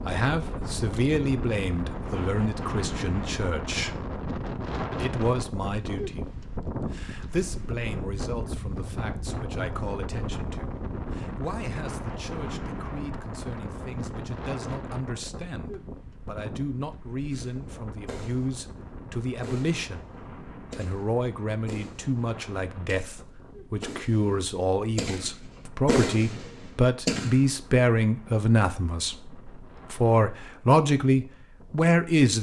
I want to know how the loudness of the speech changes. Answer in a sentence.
The loudness of the speech goes down, then up.